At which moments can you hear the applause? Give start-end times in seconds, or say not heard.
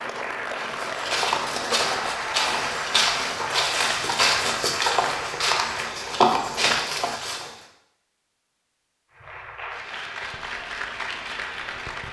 0.0-6.2, 9.1-12.0.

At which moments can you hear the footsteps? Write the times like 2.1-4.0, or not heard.
0.6-7.6.